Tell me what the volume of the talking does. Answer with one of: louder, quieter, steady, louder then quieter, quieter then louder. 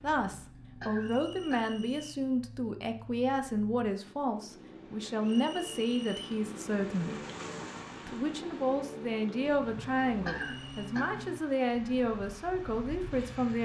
steady.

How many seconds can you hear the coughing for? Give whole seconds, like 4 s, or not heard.
3 s.